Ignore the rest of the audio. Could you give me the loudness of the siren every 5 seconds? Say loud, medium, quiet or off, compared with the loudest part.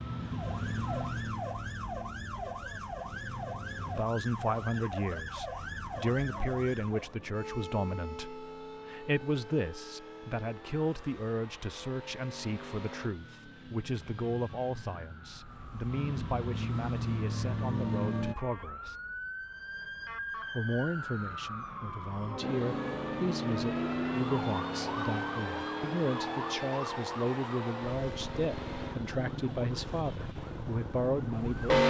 loud, loud, quiet, medium, loud, loud, loud.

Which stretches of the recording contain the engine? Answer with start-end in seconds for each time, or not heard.
0.0-4.0, 5.6-18.4, 22.4-31.8.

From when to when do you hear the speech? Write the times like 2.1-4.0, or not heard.
3.9-18.9, 20.6-31.8.